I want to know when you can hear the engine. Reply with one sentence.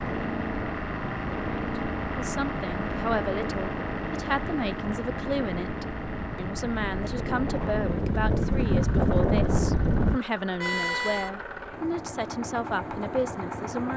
You can hear the engine from 0.0 to 13.9 s.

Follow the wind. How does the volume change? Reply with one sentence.
The volume of the wind goes up.